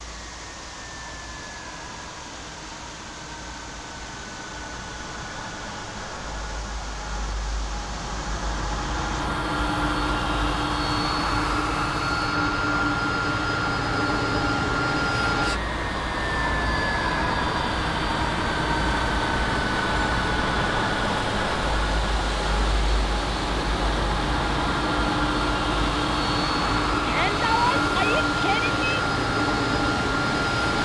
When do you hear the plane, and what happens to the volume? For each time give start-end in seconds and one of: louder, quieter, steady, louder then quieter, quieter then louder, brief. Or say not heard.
0.0-30.8 louder.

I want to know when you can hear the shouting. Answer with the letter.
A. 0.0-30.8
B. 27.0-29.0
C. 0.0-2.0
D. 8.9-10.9
B.